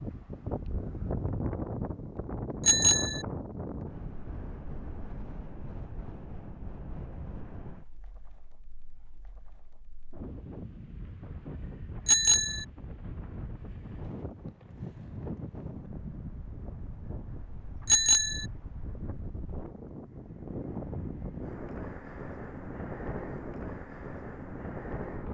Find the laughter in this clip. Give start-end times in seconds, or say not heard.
not heard.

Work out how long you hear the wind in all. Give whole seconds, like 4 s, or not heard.
25 s.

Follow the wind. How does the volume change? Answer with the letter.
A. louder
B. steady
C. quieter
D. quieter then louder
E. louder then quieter
D.